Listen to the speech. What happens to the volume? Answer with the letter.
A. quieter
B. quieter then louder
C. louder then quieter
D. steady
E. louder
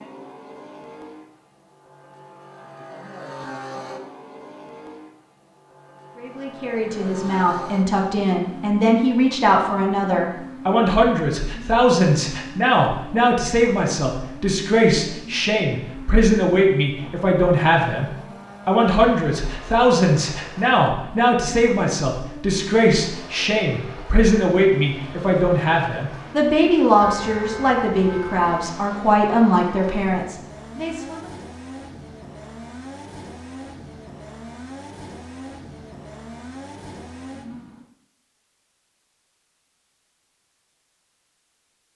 D.